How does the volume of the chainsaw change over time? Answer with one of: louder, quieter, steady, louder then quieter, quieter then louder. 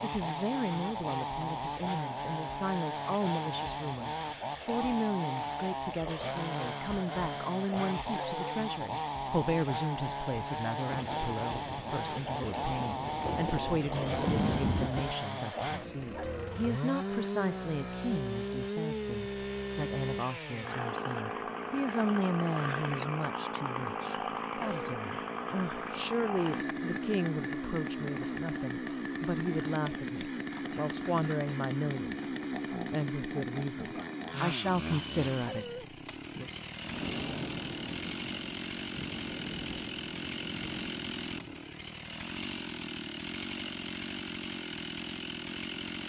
steady.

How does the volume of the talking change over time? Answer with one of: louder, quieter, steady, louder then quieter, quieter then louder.
steady.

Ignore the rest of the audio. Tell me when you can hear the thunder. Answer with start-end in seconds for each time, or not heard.
10.9-15.1, 36.8-41.6.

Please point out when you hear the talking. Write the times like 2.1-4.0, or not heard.
0.0-32.3, 32.9-36.5.